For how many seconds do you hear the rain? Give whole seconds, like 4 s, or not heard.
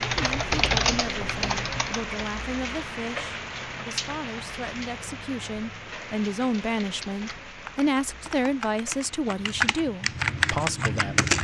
11 s.